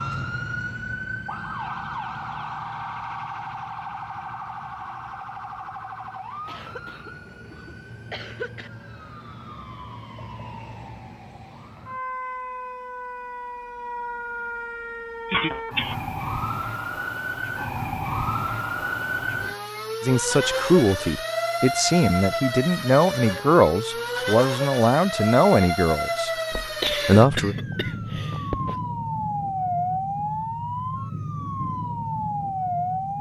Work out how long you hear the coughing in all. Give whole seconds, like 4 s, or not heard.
5 s.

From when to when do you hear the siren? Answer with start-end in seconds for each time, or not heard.
0.0-33.1.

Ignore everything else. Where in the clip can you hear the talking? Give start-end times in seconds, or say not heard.
20.0-26.3, 27.1-27.6.